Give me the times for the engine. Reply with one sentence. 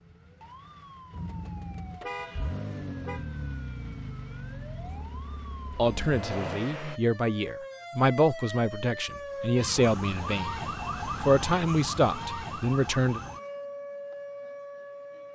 You can hear the engine from 0.0 to 7.0 s.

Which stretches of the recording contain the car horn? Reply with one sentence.
The car horn can be heard from 2.0 to 3.2 s.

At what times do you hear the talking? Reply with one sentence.
The talking can be heard from 5.8 to 13.2 s.